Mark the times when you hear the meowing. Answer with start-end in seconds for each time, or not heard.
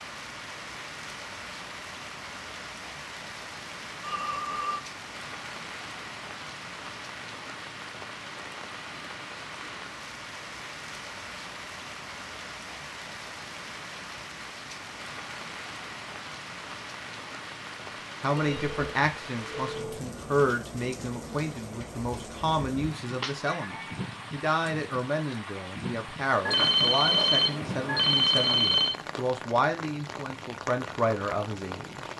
23.0-24.1.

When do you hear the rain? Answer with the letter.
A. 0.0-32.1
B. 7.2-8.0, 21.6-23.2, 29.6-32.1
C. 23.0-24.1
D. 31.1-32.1
A.